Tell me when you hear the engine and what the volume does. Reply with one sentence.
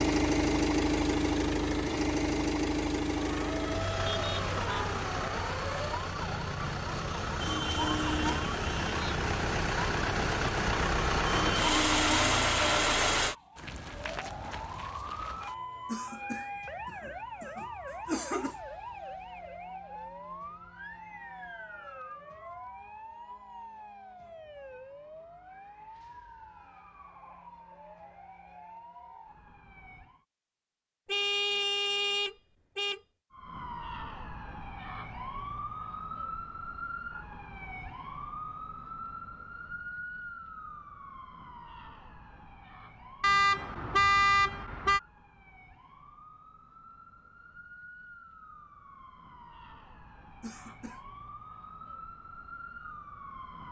The engine can be heard from 0.0 to 13.3 s, getting quieter then louder.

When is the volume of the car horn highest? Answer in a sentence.
The loudest moment of the car horn is at 44 seconds.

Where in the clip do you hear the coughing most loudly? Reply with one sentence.
The volume of the coughing peaks at 18 seconds.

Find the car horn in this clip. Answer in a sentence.
You can hear the car horn from 4.0 to 4.9 s, from 31.1 to 33.0 s and from 43.2 to 45.0 s.